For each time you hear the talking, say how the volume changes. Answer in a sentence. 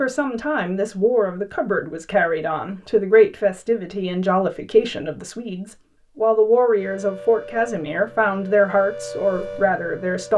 The talking can be heard from 0.0 to 10.3 s, at a steady volume.